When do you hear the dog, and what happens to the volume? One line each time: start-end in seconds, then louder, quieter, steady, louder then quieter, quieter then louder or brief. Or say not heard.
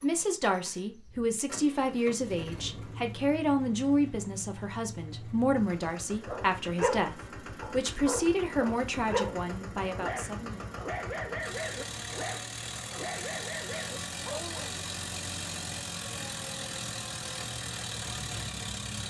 6.2-14.8 quieter.